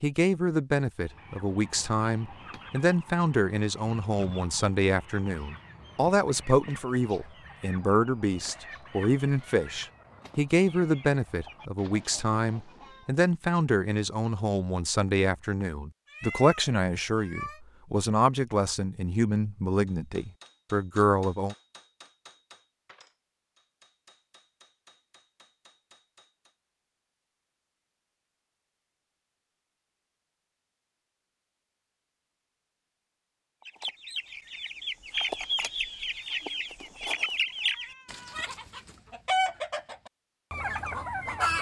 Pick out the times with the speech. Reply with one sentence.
You can hear the speech from 0.0 to 21.6 s.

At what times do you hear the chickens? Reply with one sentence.
The chickens can be heard from 0.9 to 13.1 s and from 33.6 to 41.5 s.